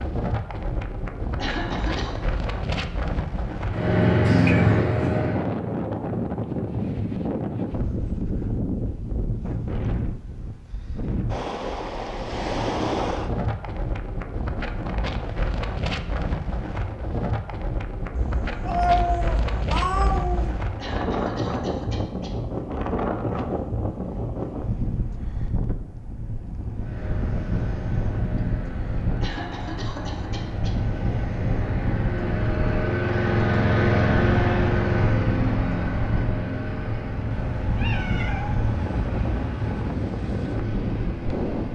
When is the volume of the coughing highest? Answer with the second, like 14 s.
2 s.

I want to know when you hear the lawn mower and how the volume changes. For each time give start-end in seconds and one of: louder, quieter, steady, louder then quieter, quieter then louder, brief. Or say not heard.
3.6-5.5 brief
26.8-41.6 louder then quieter.